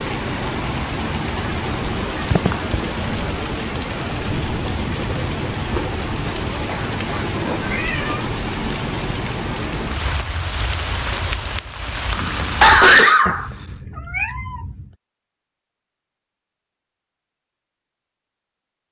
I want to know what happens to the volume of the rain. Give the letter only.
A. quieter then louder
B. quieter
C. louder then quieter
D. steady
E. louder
D.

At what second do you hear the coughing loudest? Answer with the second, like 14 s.
13 s.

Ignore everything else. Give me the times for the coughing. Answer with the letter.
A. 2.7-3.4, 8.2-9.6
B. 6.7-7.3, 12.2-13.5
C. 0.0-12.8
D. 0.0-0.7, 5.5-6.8
B.